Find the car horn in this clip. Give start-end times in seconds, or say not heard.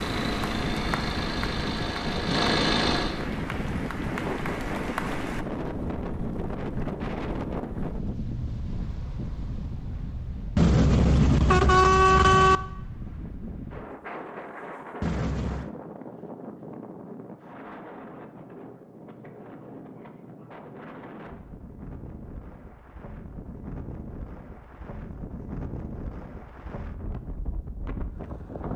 10.6-12.6, 15.0-15.7.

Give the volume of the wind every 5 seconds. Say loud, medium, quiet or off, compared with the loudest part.
loud, loud, medium, medium, medium, medium.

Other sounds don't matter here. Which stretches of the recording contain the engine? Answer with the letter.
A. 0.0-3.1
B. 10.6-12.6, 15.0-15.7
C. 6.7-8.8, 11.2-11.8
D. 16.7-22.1
A.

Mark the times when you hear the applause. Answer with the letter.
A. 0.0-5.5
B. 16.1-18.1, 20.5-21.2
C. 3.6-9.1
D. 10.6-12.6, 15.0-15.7
A.